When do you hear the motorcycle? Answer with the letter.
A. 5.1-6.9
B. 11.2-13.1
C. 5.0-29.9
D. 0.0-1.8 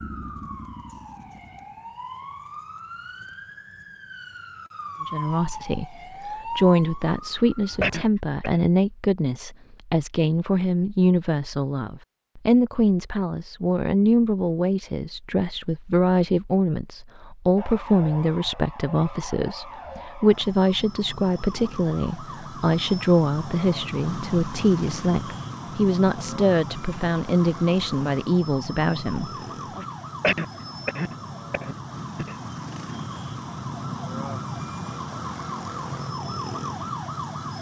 D.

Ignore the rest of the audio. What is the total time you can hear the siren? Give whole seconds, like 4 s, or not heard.
28 s.